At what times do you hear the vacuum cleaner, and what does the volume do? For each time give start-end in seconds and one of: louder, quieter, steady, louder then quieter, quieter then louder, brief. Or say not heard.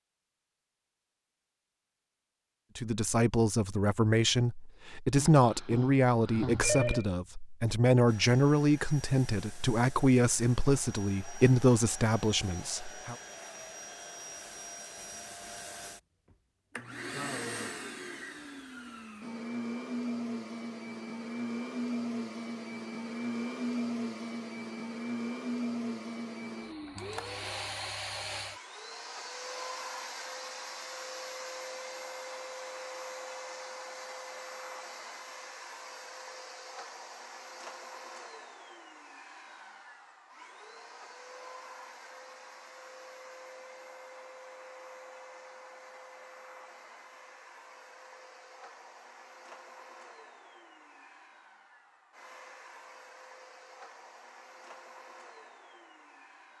8.1-56.5 louder then quieter.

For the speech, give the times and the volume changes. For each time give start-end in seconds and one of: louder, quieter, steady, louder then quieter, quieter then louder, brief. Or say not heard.
2.8-13.2 steady.